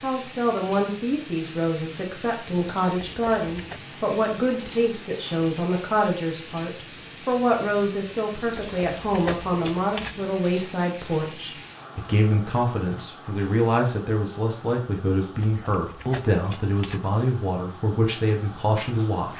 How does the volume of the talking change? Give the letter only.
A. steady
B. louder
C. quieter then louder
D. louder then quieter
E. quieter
A.